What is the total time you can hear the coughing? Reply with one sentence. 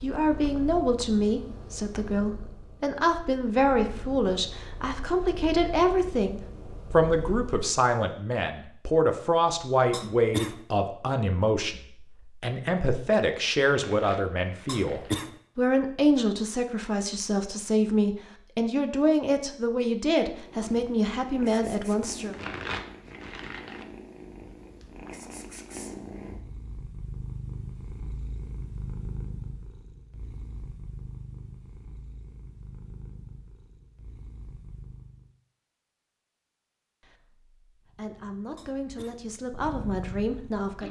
The coughing can be heard for 2 seconds in total.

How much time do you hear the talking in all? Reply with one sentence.
You can hear the talking for 26 seconds altogether.